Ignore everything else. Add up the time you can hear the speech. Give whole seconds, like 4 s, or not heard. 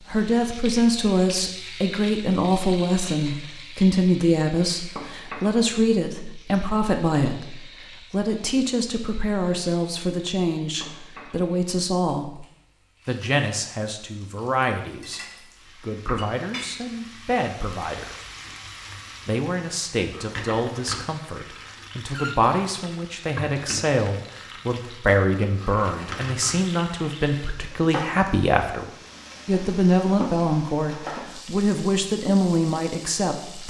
31 s.